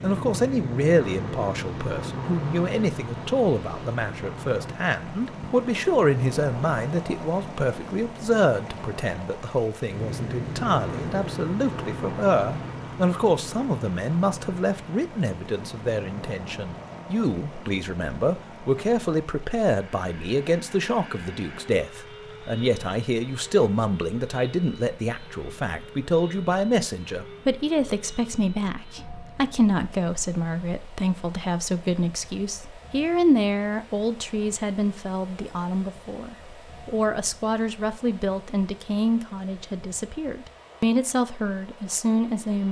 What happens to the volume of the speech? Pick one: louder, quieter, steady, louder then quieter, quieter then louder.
steady.